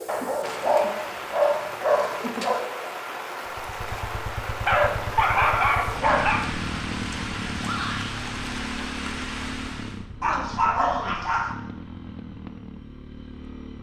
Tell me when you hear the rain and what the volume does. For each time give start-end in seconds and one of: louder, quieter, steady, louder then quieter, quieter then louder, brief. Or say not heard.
0.0-10.1 steady.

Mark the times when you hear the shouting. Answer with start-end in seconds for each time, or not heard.
7.6-8.2.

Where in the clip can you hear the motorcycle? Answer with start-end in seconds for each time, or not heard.
3.5-13.7.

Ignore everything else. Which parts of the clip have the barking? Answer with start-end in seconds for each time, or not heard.
0.1-2.6, 4.7-6.5, 10.2-11.6.